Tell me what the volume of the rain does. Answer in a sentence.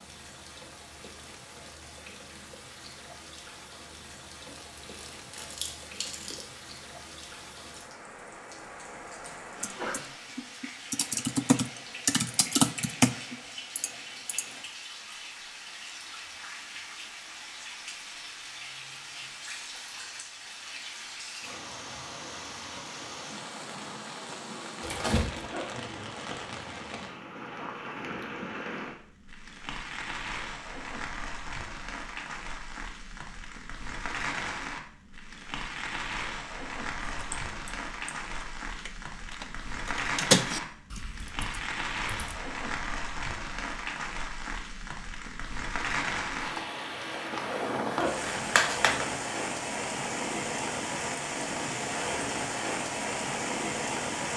The volume of the rain goes up.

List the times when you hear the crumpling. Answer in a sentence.
You can hear the crumpling from 4.5 to 6.5 s, from 24.8 to 25.4 s and from 48.0 to 49.0 s.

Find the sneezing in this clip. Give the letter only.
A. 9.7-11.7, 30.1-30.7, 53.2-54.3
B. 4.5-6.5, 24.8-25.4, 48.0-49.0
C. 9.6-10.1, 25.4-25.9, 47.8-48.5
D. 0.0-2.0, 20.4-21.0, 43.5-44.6
C.